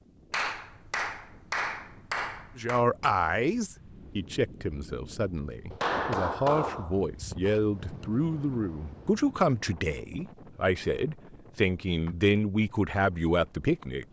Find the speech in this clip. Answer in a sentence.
You can hear the speech from 2.5 to 14.0 s.